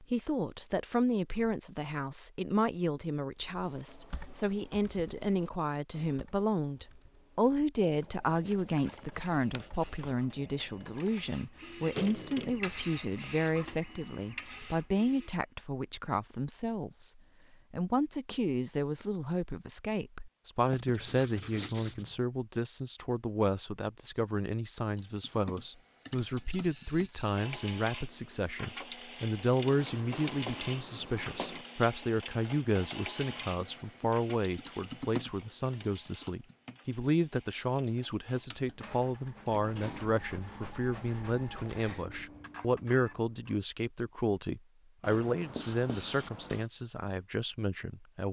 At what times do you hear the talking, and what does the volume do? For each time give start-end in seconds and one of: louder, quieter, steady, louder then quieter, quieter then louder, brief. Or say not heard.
0.0-48.2 steady.